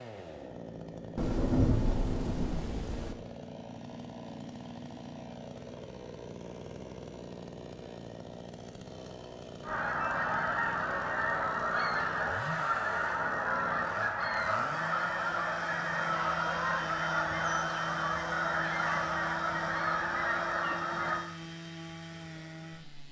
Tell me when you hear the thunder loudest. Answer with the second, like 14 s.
2 s.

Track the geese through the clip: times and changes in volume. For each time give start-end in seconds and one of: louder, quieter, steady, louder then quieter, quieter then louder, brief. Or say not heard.
9.6-21.2 steady.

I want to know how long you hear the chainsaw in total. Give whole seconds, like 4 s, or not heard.
23 s.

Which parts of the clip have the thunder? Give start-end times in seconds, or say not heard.
1.1-3.1.